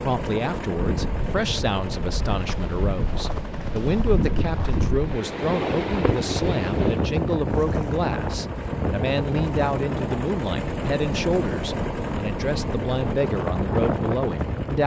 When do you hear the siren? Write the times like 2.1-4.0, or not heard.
not heard.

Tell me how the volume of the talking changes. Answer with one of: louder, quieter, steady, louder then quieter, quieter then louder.
steady.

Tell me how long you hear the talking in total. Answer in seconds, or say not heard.
15 s.